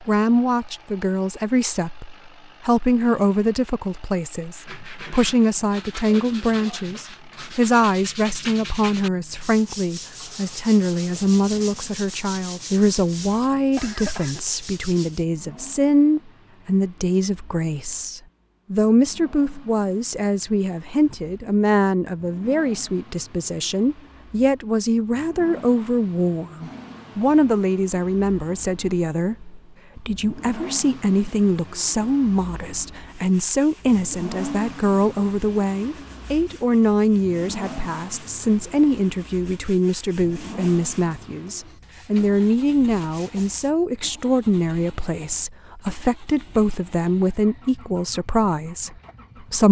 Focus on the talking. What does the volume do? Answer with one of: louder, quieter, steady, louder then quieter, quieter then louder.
steady.